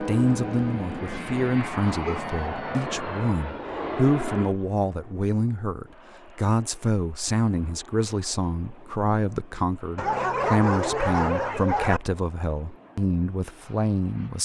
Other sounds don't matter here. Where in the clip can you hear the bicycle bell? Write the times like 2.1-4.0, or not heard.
not heard.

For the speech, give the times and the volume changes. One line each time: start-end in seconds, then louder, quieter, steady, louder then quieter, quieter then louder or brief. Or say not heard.
0.0-14.4 steady.